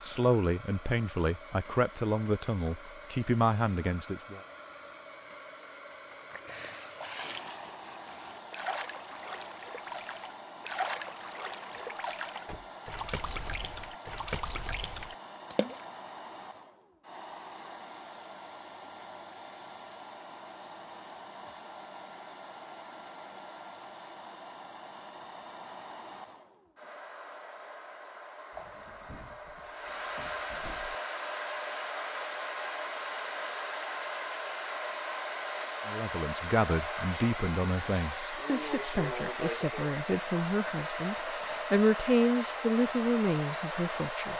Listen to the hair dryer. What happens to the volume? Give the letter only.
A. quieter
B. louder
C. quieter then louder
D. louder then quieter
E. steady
B.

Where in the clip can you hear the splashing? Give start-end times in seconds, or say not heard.
6.2-15.9.